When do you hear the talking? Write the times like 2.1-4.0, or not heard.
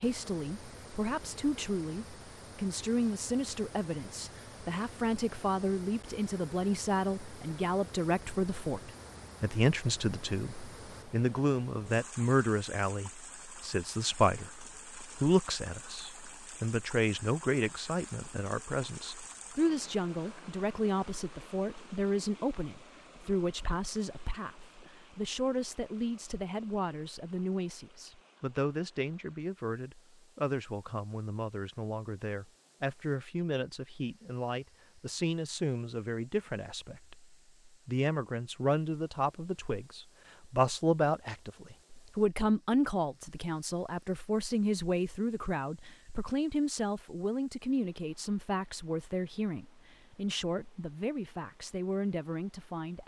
0.0-53.0.